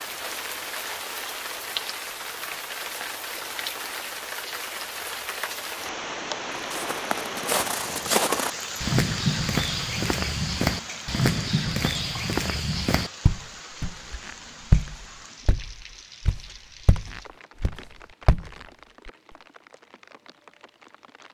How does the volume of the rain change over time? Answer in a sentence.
The loudness of the rain goes down.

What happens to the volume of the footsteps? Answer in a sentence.
The loudness of the footsteps goes down.